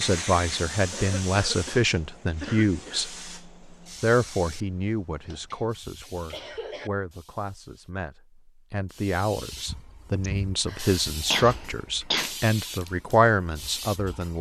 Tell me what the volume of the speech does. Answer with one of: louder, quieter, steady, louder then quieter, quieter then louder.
quieter then louder.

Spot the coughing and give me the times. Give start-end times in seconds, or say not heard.
0.9-3.1, 5.2-6.9, 10.2-12.3.